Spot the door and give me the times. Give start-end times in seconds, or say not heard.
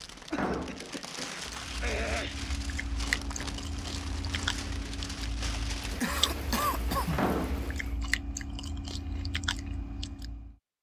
0.3-0.9, 7.1-7.8.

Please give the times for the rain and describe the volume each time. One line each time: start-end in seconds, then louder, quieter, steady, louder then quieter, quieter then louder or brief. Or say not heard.
0.0-8.0 steady.